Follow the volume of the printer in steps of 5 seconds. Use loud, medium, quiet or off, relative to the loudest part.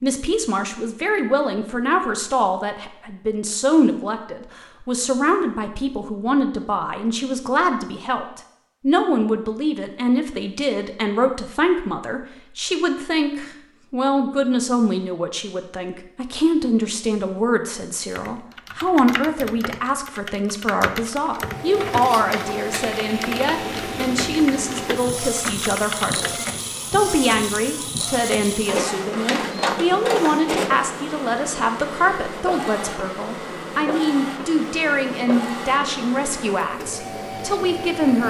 off, off, off, off, loud, loud, loud, loud.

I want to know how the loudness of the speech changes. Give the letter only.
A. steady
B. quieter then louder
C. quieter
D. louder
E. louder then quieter
A.